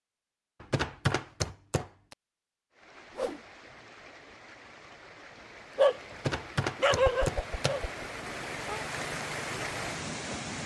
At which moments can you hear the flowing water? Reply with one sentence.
The flowing water can be heard from 2.7 to 10.6 s.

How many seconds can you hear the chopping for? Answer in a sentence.
The chopping can be heard for 3 seconds in total.